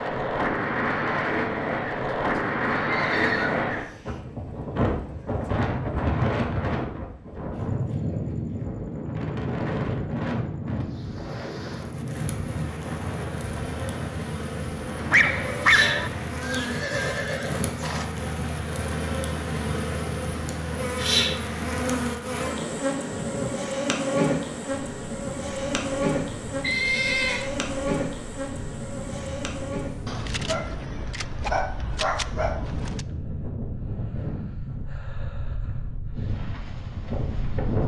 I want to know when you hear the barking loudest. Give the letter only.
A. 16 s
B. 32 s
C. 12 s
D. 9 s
A.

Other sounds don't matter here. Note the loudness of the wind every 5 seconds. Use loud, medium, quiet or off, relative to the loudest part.
loud, loud, medium, medium, quiet, quiet, medium, medium.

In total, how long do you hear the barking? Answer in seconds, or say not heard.
4 s.